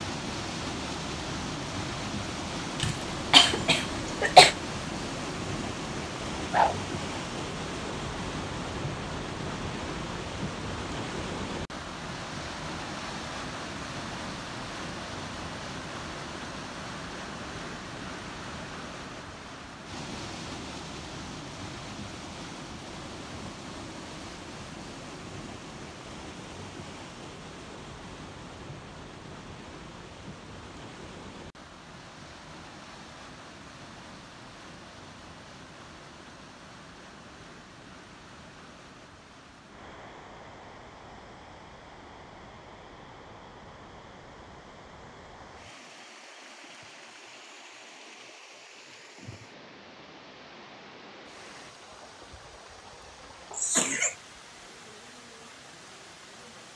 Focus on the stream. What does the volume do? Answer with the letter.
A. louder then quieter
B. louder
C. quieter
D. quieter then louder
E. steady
C.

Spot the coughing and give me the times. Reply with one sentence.
The coughing can be heard from 2.8 to 4.5 s and from 53.5 to 54.1 s.